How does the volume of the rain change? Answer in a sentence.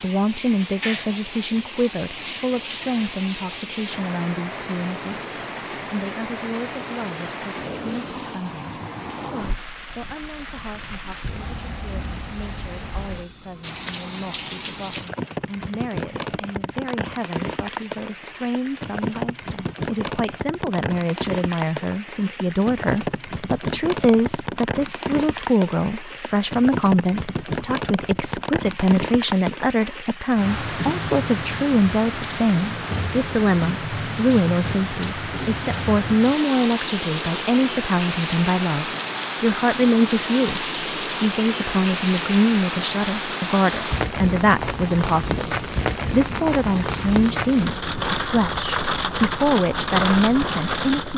The volume of the rain goes up.